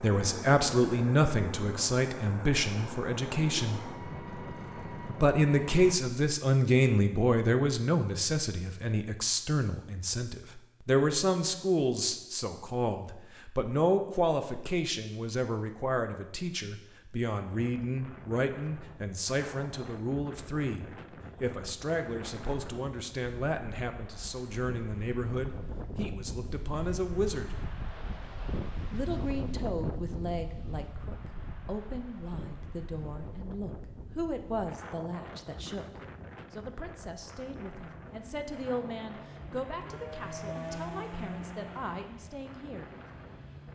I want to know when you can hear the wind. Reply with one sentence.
The wind can be heard from 17.4 to 43.6 s.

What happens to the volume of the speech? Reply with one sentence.
The volume of the speech goes down.